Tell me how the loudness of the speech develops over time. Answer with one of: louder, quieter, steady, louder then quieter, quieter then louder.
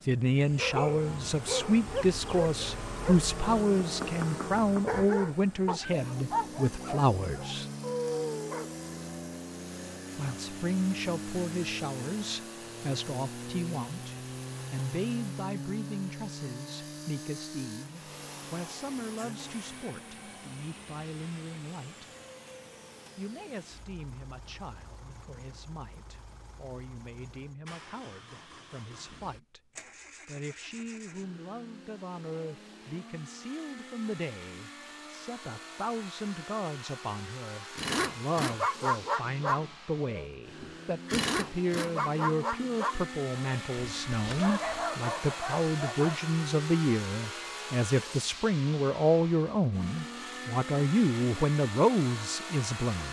quieter then louder.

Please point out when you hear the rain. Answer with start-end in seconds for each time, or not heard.
not heard.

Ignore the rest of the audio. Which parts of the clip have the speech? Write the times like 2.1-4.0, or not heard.
0.1-7.7, 10.2-22.1, 23.1-29.6, 30.2-53.0.